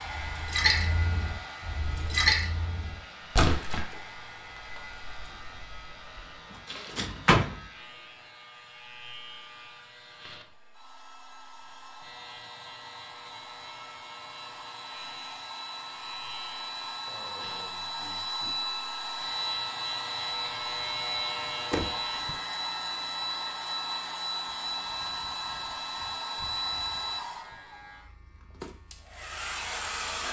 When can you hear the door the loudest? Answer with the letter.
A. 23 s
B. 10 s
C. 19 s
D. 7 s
D.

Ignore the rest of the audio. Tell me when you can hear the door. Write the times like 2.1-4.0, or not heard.
7.0-7.5, 21.7-22.4.